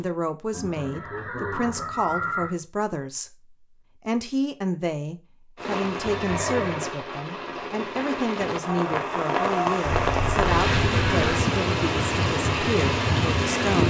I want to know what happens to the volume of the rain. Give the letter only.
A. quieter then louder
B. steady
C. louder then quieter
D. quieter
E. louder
E.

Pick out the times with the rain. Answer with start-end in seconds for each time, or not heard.
5.5-13.8.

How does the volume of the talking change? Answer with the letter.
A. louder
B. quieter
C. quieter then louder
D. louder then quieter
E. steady
E.